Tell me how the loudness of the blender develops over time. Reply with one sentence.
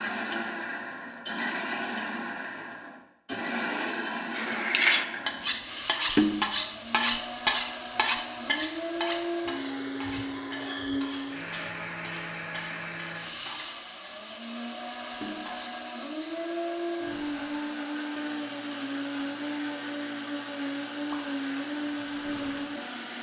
The volume of the blender stays about the same.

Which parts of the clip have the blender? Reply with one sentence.
The blender can be heard from 0.0 to 23.1 s.